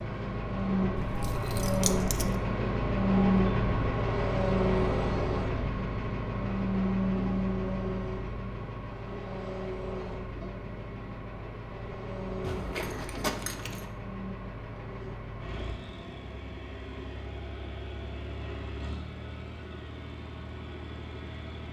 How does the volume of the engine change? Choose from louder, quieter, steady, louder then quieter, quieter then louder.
quieter.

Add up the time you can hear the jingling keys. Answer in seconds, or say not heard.
3 s.